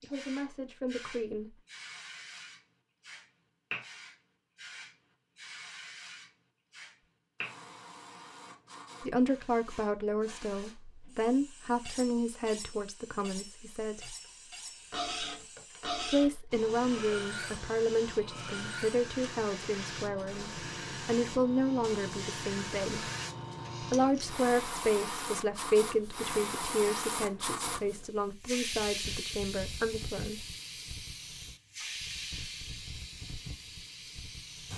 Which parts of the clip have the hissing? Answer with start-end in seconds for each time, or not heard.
0.0-34.7.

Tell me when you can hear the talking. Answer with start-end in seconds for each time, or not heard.
0.0-1.5, 9.0-14.2, 16.1-23.1, 23.8-30.4.